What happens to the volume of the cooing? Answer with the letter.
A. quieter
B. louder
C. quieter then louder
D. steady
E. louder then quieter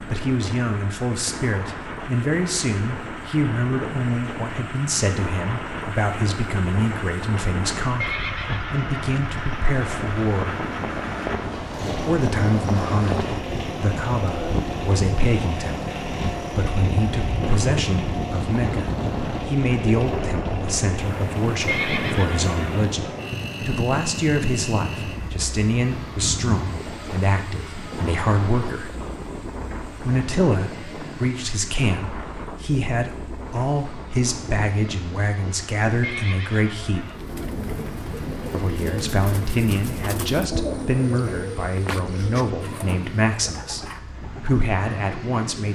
A.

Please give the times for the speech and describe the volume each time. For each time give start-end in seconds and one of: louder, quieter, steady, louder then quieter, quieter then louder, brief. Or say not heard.
0.1-10.7 steady
12.0-29.1 steady
30.0-37.1 steady
38.5-45.7 steady.